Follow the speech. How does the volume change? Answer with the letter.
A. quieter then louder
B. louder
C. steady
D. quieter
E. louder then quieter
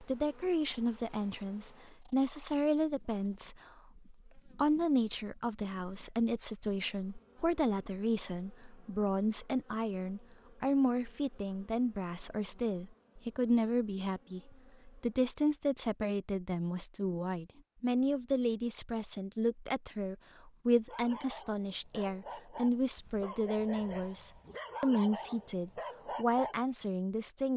C.